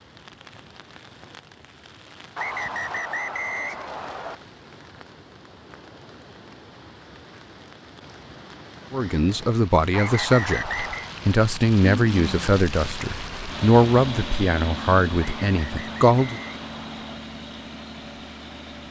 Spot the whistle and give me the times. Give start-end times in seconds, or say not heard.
2.4-4.3, 9.9-11.1, 15.2-17.2.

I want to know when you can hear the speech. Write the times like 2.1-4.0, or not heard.
8.9-16.4.